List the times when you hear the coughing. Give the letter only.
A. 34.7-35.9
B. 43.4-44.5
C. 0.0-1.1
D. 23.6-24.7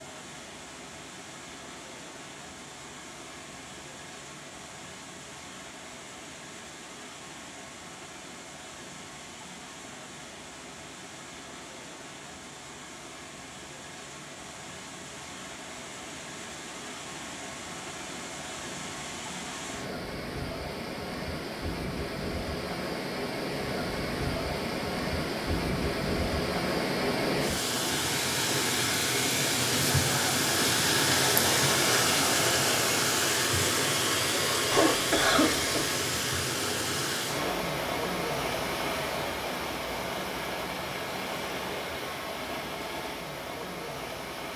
A.